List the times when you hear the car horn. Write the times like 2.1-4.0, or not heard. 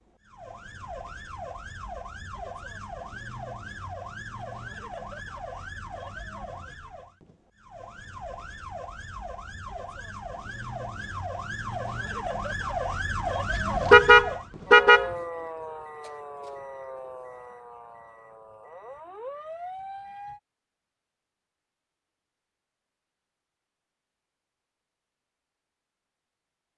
13.9-15.1.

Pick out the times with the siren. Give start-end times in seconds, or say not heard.
0.0-20.4.